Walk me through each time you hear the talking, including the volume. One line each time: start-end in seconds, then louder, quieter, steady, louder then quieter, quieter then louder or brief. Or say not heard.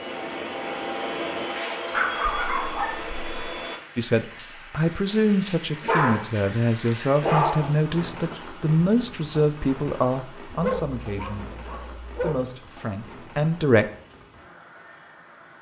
4.0-13.8 quieter.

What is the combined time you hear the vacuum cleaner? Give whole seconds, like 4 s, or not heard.
4 s.